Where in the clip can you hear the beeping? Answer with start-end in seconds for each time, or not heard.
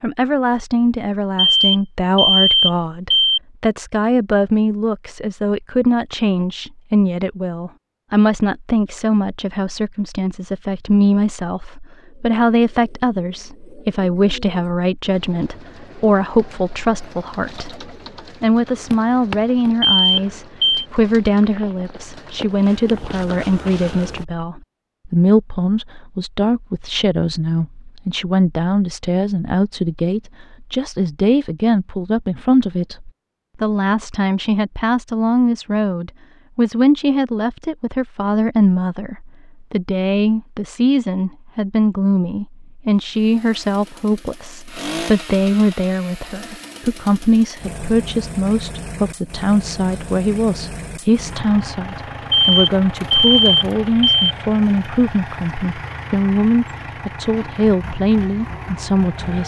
1.4-3.4, 19.8-20.9, 52.3-54.1.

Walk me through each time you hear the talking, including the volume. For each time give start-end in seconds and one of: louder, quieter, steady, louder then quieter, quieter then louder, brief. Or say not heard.
0.0-59.4 steady.